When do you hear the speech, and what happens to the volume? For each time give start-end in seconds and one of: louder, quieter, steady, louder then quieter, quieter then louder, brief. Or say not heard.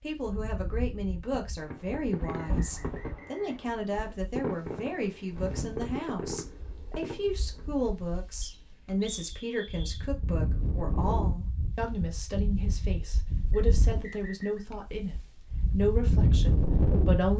0.0-17.3 steady.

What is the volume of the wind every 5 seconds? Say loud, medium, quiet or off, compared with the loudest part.
quiet, quiet, medium, loud.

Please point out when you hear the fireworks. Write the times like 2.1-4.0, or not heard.
1.6-7.7.